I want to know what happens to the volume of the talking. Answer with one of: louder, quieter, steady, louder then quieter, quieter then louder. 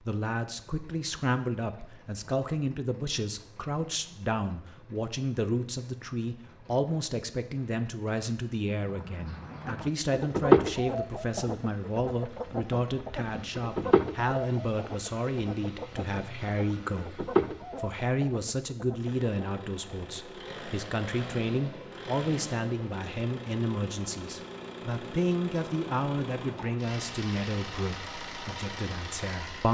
steady.